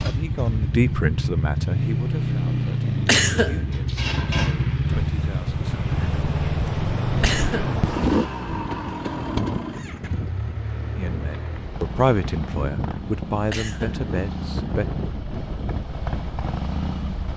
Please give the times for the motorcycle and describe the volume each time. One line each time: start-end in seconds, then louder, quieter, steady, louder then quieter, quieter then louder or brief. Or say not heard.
0.0-17.3 quieter.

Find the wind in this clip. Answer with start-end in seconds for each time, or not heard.
4.9-17.3.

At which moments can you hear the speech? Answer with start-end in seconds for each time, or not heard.
0.0-5.8, 10.9-14.8.